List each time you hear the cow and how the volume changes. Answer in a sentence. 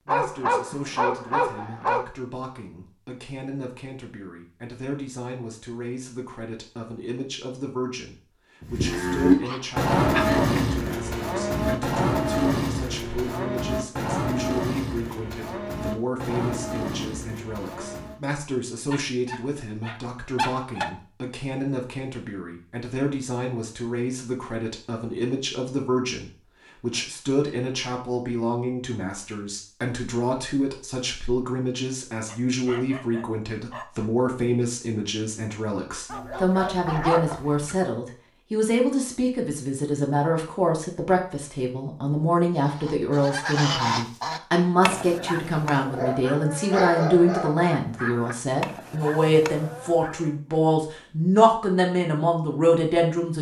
You can hear the cow from 8.6 to 18.2 s, getting quieter.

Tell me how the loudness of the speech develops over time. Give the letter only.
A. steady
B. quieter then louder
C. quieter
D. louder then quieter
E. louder
E.